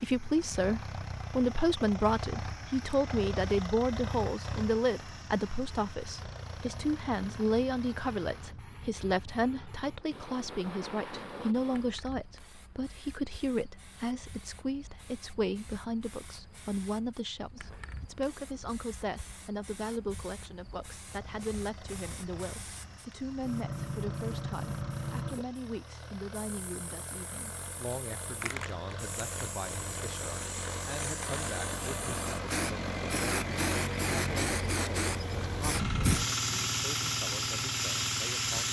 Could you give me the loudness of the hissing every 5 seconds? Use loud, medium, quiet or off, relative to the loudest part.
quiet, quiet, quiet, quiet, medium, medium, medium, loud.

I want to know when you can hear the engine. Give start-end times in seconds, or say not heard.
0.0-8.6, 21.1-38.6.